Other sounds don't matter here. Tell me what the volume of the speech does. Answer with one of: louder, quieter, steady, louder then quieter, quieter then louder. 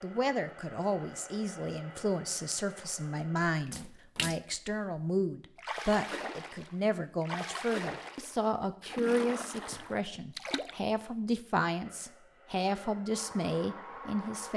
steady.